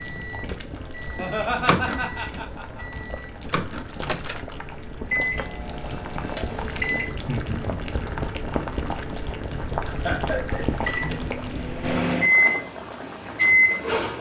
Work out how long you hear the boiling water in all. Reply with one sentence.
You can hear the boiling water for 14 seconds altogether.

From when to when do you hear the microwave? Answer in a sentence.
The microwave can be heard from 0.0 to 7.2 s and from 10.7 to 14.1 s.